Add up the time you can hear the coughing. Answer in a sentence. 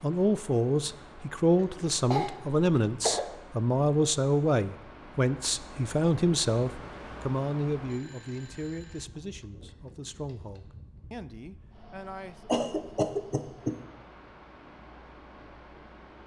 You can hear the coughing for 3 seconds altogether.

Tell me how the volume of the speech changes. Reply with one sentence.
The loudness of the speech goes down.